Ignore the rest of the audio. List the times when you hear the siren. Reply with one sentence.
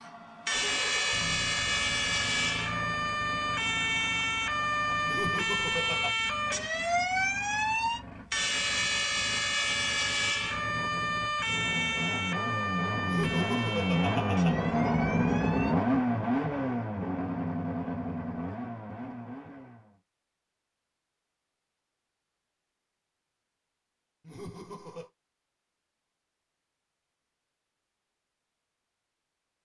The siren can be heard from 0.0 to 15.8 s.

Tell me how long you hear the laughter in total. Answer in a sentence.
You can hear the laughter for 4 seconds altogether.